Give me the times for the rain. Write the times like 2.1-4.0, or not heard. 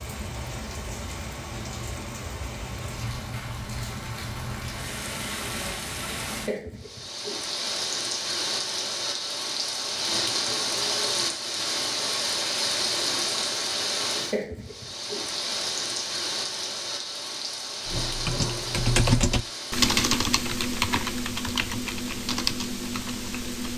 0.0-19.9.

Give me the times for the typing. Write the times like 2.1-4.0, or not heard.
17.9-23.7.